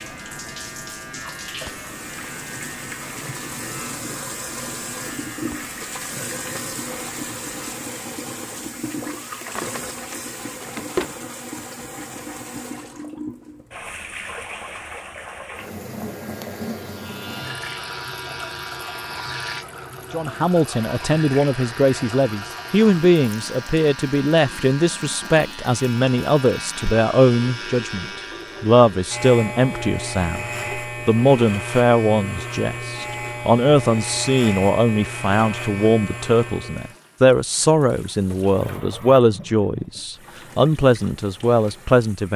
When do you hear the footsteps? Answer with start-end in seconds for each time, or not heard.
not heard.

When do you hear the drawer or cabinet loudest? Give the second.
11 s.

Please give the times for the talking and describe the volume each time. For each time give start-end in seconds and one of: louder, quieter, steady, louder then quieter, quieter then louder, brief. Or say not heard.
20.1-42.3 steady.